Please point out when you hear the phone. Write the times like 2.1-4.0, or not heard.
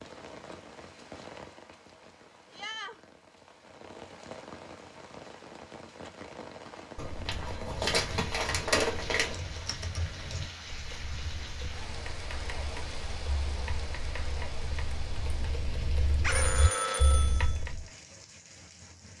16.2-17.6.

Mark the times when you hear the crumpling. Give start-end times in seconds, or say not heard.
7.0-9.4.